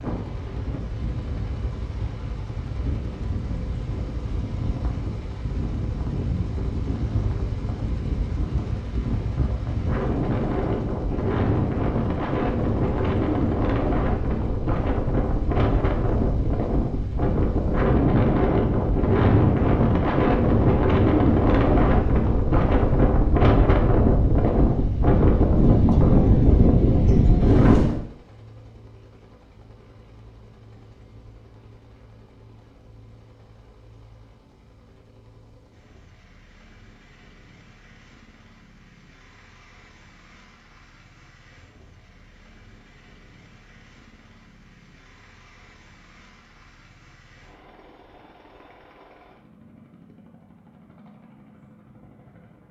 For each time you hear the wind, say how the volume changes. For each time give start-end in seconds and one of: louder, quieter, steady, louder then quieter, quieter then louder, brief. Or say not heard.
0.0-28.0 louder.